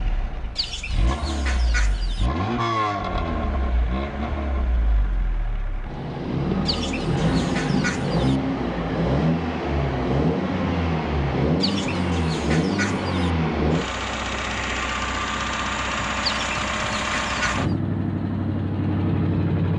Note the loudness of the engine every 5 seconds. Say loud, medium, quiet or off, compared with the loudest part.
medium, loud, loud, loud.